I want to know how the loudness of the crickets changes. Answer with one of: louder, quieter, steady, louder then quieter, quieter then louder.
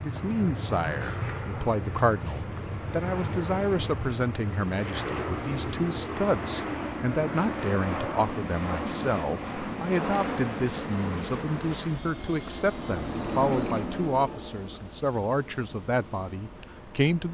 louder then quieter.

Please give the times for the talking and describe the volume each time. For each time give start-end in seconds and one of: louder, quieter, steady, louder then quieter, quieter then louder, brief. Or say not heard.
0.0-17.3 steady.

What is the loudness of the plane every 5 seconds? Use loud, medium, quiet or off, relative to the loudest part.
loud, loud, loud, quiet.